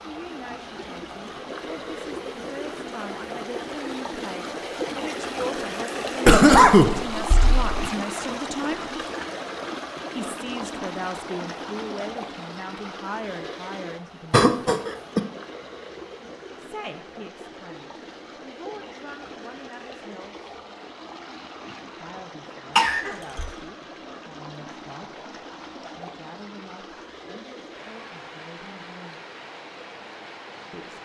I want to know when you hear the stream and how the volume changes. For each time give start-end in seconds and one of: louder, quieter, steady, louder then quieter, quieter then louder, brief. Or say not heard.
0.0-31.0 quieter.